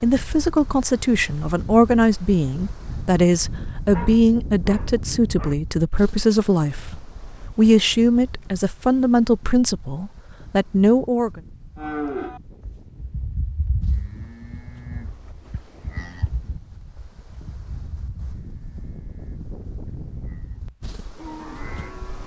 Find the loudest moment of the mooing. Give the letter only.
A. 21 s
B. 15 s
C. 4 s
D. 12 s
D.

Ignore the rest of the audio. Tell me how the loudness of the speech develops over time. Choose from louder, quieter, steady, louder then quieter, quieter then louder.
steady.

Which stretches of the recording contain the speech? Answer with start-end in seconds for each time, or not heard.
0.0-11.4.